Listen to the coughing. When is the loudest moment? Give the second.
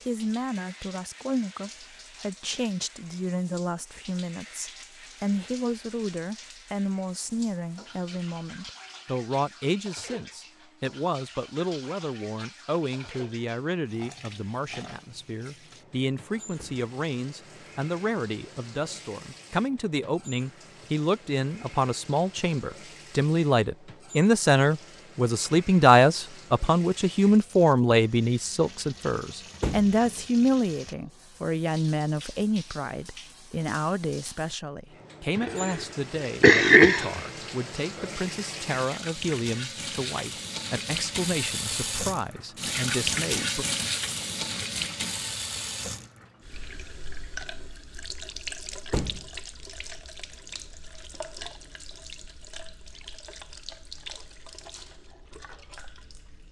37 s.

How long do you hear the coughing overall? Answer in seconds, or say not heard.
2 s.